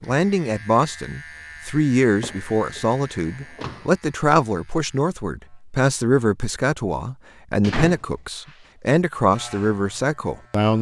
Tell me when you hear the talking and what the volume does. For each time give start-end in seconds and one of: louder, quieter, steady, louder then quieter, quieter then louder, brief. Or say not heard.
0.0-10.7 steady.